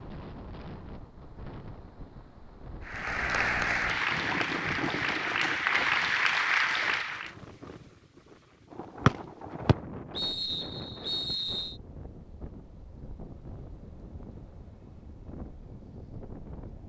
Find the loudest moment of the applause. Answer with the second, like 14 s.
6 s.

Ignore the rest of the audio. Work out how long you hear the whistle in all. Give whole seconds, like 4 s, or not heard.
3 s.